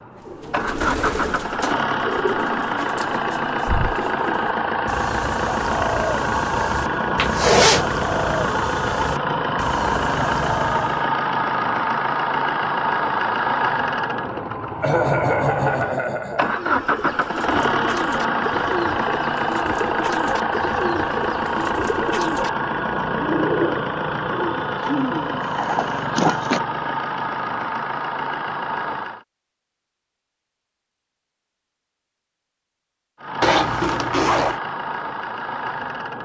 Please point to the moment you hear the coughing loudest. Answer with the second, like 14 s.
15 s.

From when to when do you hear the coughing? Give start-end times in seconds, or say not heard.
14.8-16.6.